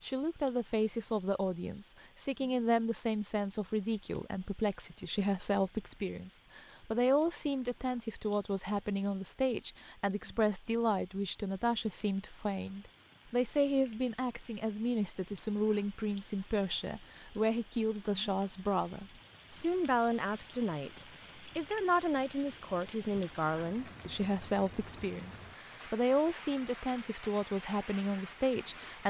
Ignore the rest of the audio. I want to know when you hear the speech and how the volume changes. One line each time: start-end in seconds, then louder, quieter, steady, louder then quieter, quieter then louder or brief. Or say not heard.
0.0-29.0 steady.